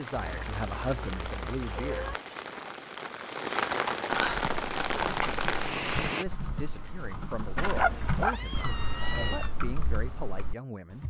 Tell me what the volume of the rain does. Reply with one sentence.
The volume of the rain goes up.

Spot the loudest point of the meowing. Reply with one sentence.
The volume of the meowing peaks at 8 seconds.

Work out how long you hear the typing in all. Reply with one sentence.
The typing can be heard for 7 seconds in total.